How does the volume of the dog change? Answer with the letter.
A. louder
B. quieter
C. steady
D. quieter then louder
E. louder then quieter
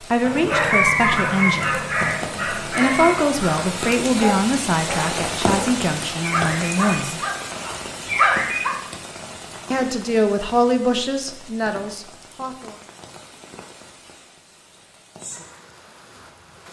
D.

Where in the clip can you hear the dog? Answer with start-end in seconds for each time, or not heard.
0.2-8.7.